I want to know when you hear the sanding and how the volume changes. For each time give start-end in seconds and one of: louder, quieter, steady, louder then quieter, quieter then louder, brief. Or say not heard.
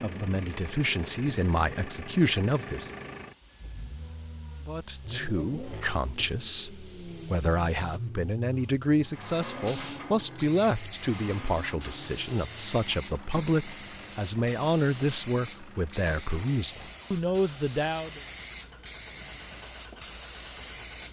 not heard.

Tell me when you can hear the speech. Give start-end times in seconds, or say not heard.
0.0-3.0, 4.7-18.2.